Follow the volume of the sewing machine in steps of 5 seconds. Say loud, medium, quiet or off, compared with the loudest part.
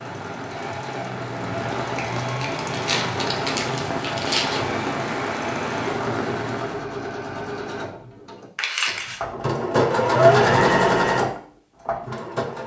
quiet, medium, loud.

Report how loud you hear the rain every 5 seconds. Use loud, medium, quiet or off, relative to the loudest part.
loud, loud, off.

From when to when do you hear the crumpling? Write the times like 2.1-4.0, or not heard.
1.9-4.6, 8.6-9.2.